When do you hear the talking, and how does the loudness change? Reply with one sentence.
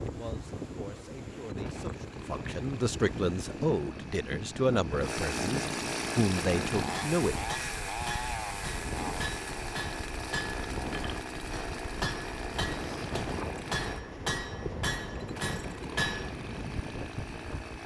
The talking can be heard from 0.0 to 7.3 s, getting louder.